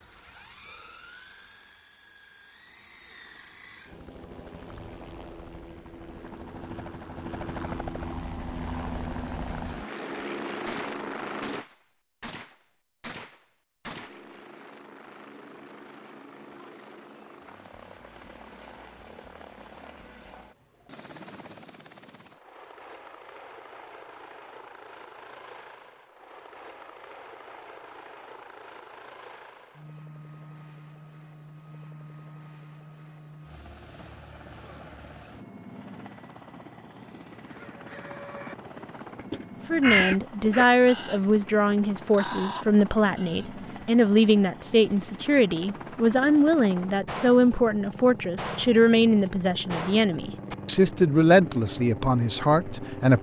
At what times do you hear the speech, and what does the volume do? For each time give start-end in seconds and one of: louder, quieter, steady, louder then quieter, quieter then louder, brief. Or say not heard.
39.7-53.1 steady.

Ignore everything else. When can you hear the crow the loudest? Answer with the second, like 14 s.
40 s.